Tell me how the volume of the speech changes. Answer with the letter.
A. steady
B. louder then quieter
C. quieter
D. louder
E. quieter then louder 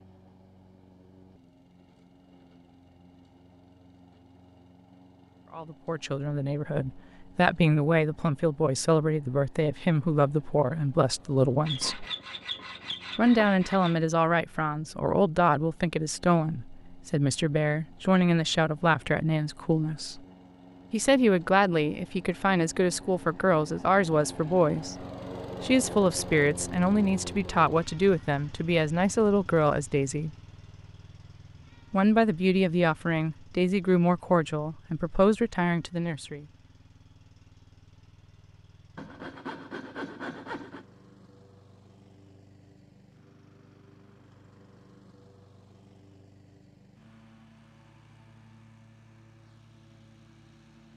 A.